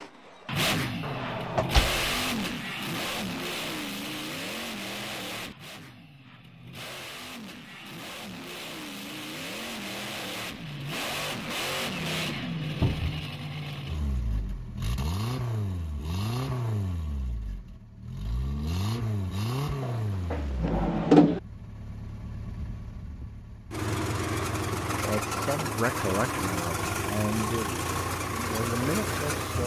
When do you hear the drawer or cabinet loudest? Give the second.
21 s.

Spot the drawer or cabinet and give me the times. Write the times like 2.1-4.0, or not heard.
1.0-2.5, 12.8-13.2, 19.8-21.4.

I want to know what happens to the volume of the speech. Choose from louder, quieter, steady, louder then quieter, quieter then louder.
quieter then louder.